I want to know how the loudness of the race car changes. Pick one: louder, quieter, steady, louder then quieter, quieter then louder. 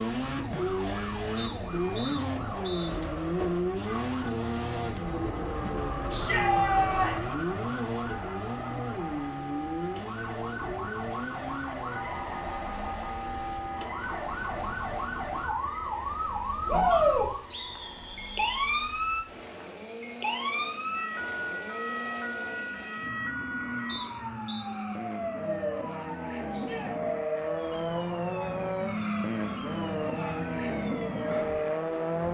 quieter then louder.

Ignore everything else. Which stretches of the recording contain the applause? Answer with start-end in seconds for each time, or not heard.
not heard.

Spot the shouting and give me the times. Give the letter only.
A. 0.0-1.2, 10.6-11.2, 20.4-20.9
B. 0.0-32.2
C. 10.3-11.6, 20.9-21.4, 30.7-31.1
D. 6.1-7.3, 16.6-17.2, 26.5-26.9
D.